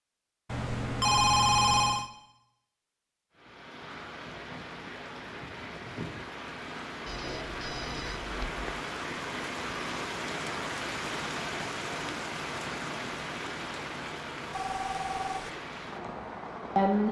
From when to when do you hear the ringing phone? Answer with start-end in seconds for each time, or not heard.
0.5-2.1, 7.0-8.8, 14.5-15.5.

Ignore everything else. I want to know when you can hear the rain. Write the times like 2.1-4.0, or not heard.
3.3-17.0.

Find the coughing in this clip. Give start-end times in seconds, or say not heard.
not heard.